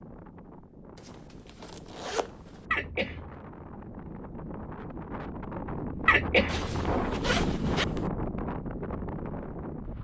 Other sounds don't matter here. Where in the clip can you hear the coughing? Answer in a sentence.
You can hear the coughing from 2.7 to 3.4 s and from 6.0 to 7.0 s.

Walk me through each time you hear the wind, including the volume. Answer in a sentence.
The wind can be heard from 0.0 to 9.9 s, getting louder.